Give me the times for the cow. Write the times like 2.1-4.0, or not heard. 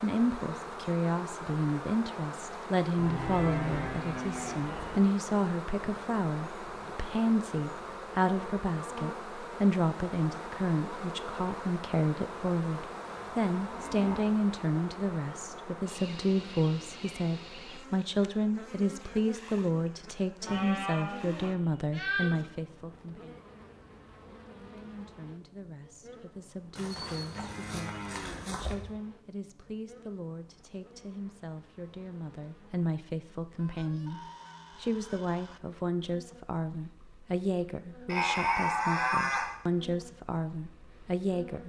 3.0-5.0, 13.2-14.3, 20.4-22.4, 26.8-28.8, 38.0-39.5.